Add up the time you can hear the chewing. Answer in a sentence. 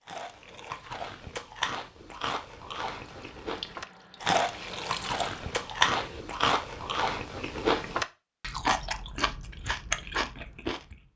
You can hear the chewing for 11 seconds altogether.